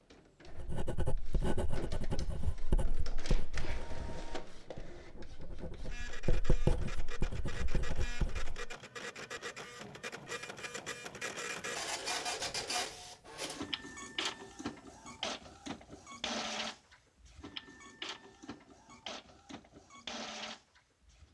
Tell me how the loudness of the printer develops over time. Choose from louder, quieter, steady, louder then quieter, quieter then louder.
louder then quieter.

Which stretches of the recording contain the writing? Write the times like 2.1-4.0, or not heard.
0.5-8.6.